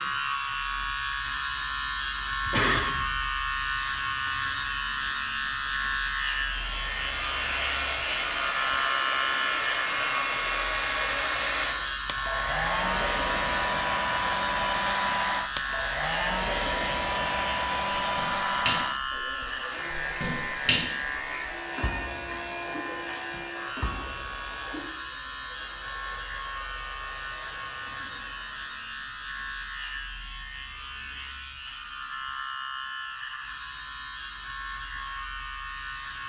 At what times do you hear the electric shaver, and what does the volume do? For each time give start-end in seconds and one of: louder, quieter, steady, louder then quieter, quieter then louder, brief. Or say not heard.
0.0-36.2 quieter.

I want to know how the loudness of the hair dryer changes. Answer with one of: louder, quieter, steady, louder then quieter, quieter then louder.
quieter.